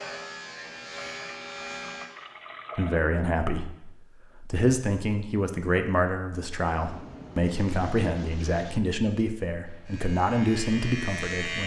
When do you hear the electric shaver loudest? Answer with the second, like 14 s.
11 s.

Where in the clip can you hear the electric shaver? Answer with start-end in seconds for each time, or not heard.
0.0-2.1, 9.7-11.6.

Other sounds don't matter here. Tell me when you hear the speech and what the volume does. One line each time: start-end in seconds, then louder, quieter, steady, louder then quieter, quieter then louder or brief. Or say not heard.
2.8-11.6 steady.